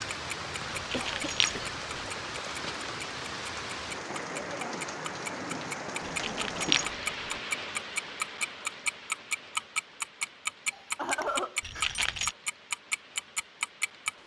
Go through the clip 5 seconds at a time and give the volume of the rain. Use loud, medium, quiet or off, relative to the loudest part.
loud, loud, quiet.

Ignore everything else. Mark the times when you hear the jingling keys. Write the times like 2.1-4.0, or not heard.
0.7-1.7, 6.0-6.9, 11.6-12.3.